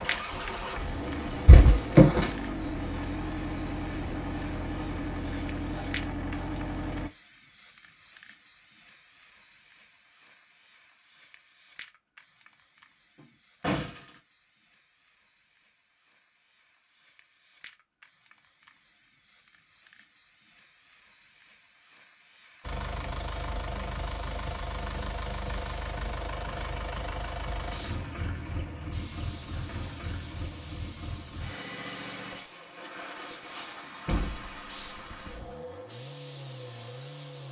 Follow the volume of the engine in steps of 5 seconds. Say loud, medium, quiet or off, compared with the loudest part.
loud, loud, off, off, loud, loud, medium, medium.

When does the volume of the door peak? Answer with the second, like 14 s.
2 s.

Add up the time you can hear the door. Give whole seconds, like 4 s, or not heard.
3 s.